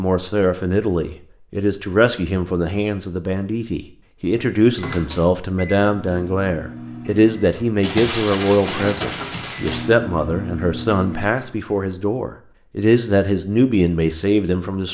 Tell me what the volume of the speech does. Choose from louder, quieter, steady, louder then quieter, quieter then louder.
steady.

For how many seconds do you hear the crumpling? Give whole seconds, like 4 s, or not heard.
2 s.